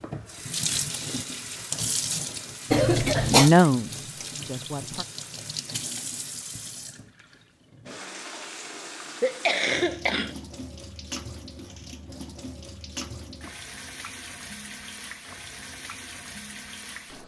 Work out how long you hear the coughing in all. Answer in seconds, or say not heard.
2 s.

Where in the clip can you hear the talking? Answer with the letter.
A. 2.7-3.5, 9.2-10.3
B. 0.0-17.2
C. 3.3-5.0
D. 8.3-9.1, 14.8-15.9
C.